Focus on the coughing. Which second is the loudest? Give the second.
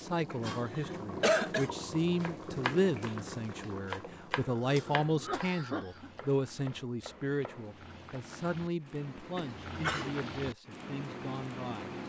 1 s.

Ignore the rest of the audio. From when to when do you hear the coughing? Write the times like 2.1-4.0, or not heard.
0.8-1.7, 4.3-6.1, 9.3-10.1.